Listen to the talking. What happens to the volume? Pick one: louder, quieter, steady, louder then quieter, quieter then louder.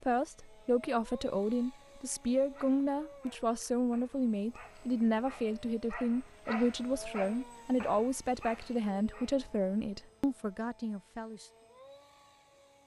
steady.